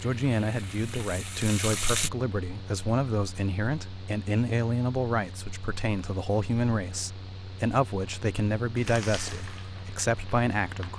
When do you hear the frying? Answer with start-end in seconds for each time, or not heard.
0.0-2.1, 8.8-10.9.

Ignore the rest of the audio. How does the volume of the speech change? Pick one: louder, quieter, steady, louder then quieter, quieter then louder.
steady.